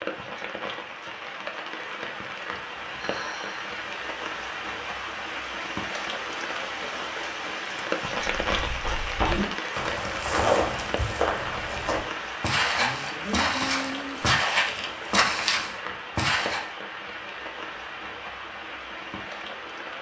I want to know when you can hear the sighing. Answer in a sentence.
You can hear the sighing from 2.5 to 3.6 s and from 12.8 to 14.3 s.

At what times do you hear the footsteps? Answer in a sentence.
You can hear the footsteps from 8.3 to 16.6 s.